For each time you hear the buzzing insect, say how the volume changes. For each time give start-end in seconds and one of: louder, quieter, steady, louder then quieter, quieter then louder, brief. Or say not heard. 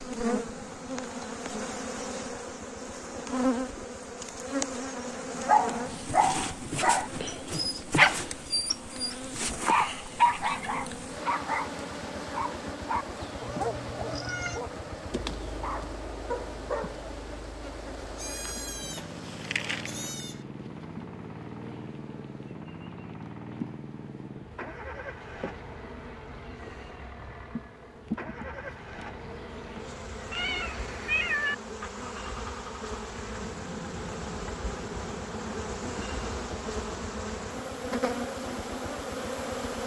0.0-39.8 quieter then louder.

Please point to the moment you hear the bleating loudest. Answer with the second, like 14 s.
20 s.